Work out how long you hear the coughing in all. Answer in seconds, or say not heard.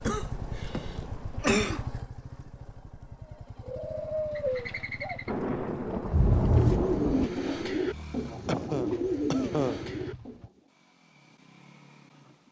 4 s.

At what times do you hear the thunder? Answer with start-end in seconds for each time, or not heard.
5.2-7.3.